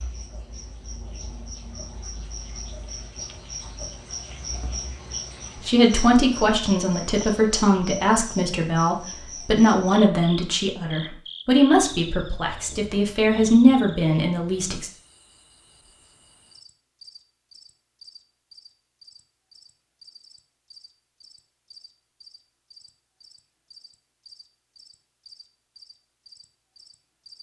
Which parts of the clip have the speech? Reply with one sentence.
The speech can be heard from 5.6 to 14.9 s.